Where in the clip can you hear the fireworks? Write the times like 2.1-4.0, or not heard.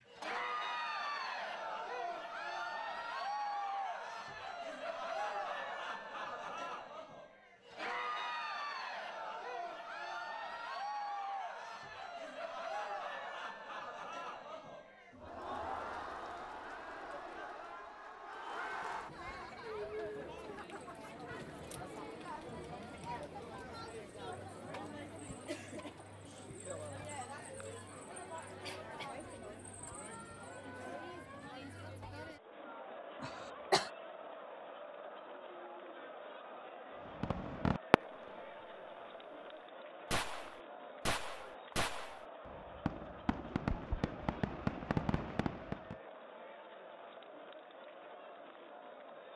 37.0-38.4, 40.1-46.0.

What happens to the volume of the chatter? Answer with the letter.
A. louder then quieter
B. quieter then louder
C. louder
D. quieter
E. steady
D.